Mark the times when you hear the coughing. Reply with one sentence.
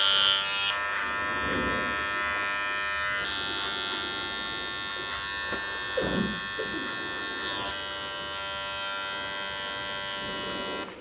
The coughing can be heard from 5.5 to 6.9 s.